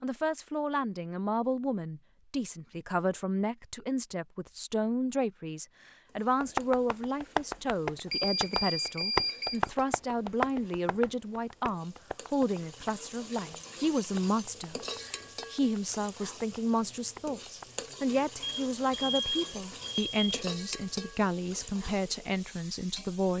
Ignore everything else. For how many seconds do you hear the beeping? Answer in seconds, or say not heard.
4 s.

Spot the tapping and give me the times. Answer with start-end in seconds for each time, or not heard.
6.4-17.8.